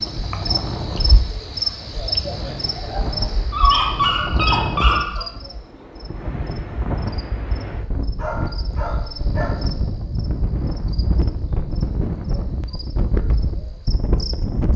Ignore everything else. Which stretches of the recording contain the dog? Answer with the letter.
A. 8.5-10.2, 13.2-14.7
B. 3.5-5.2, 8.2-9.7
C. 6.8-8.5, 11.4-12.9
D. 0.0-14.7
B.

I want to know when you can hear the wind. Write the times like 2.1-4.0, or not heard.
0.0-14.7.